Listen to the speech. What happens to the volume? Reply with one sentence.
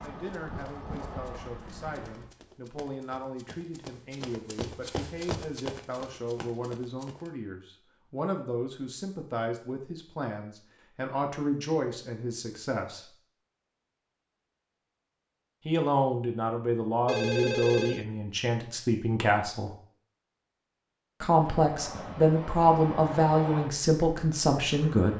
The volume of the speech goes up.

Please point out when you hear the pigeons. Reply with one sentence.
You can't hear the pigeons here.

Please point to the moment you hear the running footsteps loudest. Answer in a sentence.
The volume of the running footsteps peaks at 5 seconds.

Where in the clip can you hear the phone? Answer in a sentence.
You can hear the phone from 17.1 to 18.1 s.